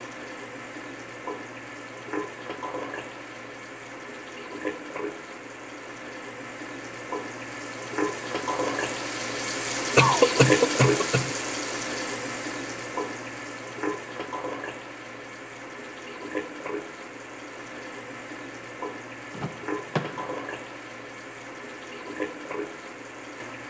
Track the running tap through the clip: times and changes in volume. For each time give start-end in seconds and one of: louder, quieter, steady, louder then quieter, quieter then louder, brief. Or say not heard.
0.0-23.6 louder then quieter.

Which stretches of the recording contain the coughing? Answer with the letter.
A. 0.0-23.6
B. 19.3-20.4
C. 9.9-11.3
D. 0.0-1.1
C.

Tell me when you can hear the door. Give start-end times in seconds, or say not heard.
19.3-20.4.